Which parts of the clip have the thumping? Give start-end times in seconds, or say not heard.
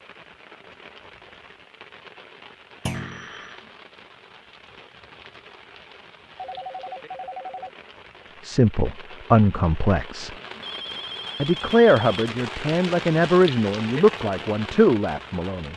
2.9-3.3.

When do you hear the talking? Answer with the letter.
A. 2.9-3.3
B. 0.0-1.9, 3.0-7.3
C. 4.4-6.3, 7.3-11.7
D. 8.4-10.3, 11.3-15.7
D.